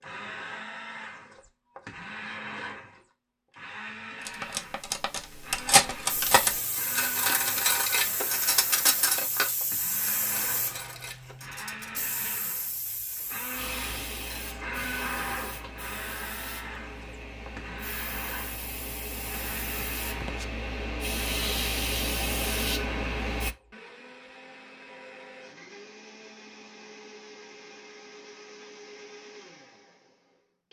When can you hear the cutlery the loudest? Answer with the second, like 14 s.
6 s.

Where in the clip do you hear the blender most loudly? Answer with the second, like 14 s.
15 s.